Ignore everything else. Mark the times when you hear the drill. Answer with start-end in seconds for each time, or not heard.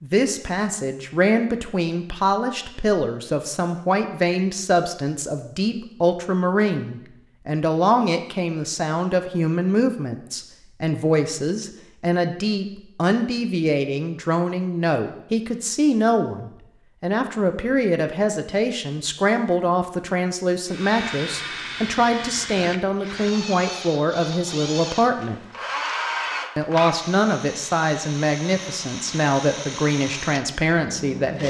20.6-31.4.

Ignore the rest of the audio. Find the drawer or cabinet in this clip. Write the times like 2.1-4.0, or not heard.
not heard.